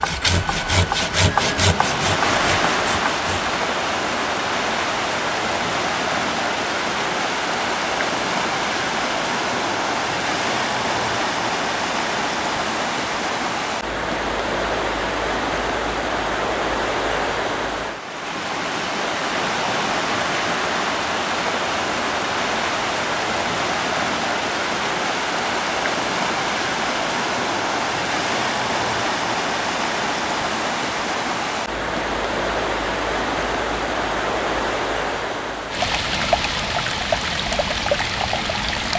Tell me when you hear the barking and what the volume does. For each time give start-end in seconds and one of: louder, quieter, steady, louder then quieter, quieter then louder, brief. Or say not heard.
not heard.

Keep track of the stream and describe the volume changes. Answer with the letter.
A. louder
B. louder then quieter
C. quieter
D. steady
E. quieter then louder
D.